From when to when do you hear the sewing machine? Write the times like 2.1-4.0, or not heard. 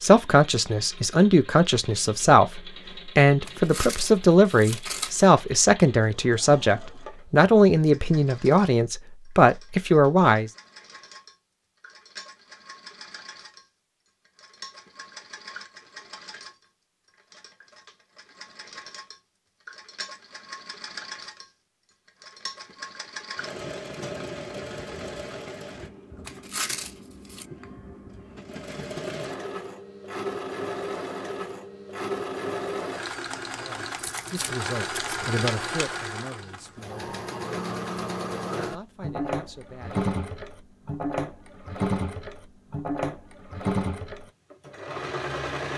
0.0-45.7.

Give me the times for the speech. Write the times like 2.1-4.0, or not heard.
0.0-10.5, 33.5-37.1, 38.5-40.1.